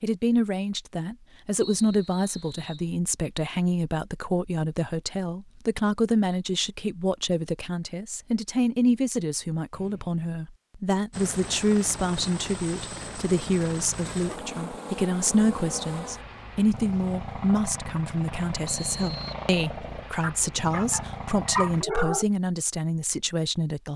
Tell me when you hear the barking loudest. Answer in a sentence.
The loudest moment of the barking is at 22 seconds.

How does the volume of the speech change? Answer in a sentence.
The volume of the speech stays about the same.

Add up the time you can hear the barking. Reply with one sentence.
You can hear the barking for 2 seconds altogether.